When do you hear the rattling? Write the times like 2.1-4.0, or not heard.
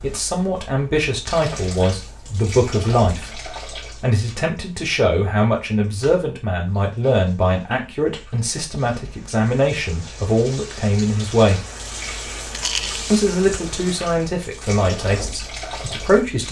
12.5-13.1.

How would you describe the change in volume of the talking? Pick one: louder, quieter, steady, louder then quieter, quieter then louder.
steady.